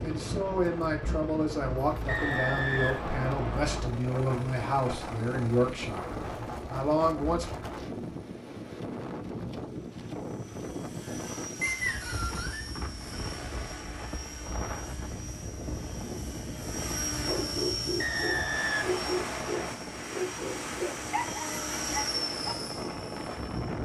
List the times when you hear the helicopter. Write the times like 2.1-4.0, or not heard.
0.0-23.8.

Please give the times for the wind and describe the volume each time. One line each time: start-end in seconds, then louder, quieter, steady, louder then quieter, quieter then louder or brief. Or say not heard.
0.0-23.8 steady.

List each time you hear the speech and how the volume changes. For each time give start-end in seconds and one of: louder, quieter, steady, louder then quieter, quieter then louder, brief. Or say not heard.
0.0-7.5 steady.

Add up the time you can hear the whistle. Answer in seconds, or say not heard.
5 s.